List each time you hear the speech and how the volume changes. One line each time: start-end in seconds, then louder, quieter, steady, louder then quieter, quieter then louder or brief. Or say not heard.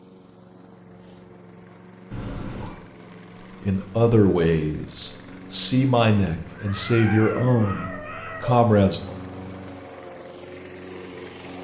3.6-9.2 steady.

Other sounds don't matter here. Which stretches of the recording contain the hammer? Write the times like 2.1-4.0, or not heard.
not heard.